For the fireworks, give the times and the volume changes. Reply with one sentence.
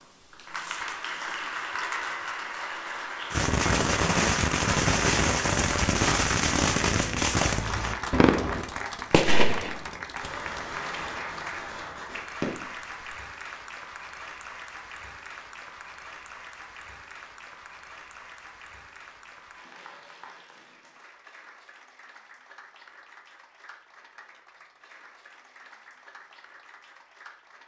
You can hear the fireworks from 3.3 to 13.1 s, getting quieter.